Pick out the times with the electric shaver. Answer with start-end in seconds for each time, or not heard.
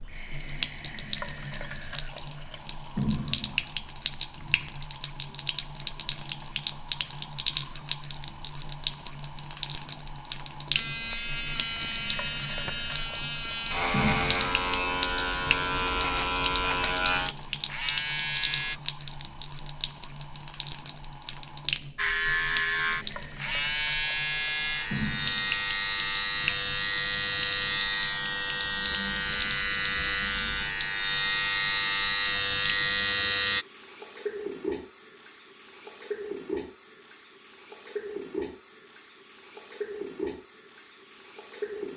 10.7-18.8, 21.9-33.6.